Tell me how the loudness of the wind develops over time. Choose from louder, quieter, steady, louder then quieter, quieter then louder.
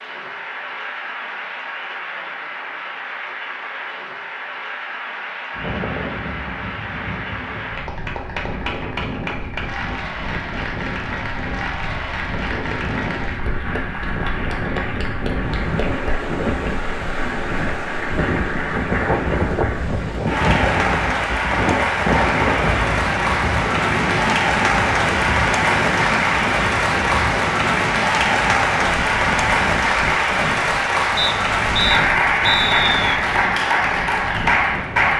louder then quieter.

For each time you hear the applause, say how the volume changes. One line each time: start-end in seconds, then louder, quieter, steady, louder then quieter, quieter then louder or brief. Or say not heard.
0.0-35.1 louder.